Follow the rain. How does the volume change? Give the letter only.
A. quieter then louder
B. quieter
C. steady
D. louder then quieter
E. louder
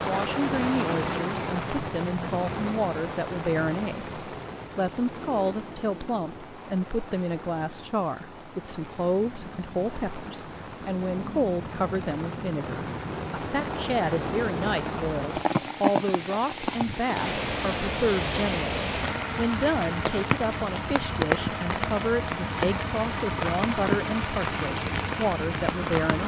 A.